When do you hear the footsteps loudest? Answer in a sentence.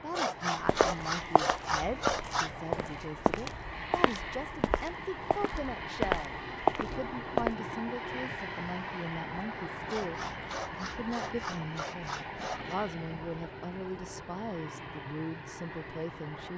The volume of the footsteps peaks at 7 seconds.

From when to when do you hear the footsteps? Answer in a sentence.
The footsteps can be heard from 0.7 to 7.5 s.